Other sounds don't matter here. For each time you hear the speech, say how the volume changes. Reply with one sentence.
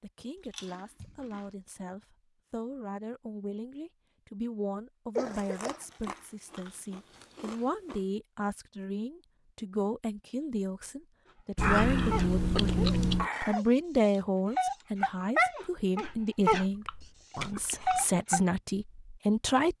You can hear the speech from 0.0 to 19.7 s, getting louder.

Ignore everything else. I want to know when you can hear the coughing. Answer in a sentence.
You can hear the coughing from 5.2 to 5.8 s and from 13.2 to 13.6 s.